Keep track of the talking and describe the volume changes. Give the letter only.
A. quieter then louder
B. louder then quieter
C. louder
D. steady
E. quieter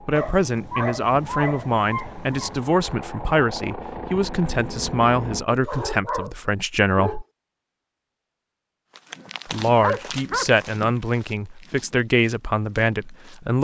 D.